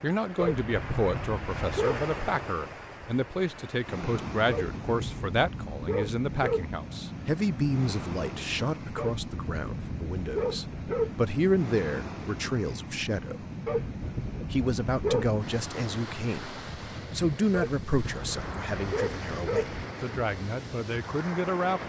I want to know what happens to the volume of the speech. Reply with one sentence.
The loudness of the speech stays about the same.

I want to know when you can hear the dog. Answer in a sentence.
You can hear the dog from 0.3 to 2.1 s, from 4.5 to 6.8 s, from 8.9 to 11.2 s, from 13.7 to 15.4 s and from 17.5 to 19.8 s.